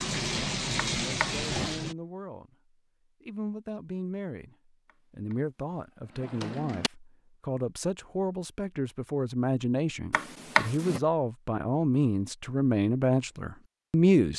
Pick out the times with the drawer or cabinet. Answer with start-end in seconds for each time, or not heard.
1.0-1.8, 6.2-6.9, 10.1-11.0.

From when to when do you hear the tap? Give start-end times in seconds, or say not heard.
0.0-1.9.